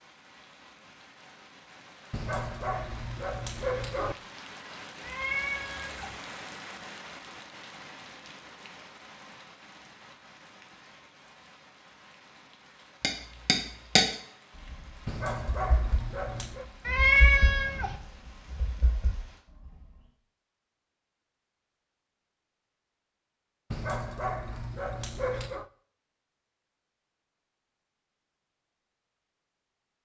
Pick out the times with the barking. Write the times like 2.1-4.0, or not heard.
2.1-4.2, 15.1-16.6, 23.7-25.7.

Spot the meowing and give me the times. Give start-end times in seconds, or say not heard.
5.0-6.2, 16.9-18.0.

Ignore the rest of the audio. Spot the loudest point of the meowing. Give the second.
17 s.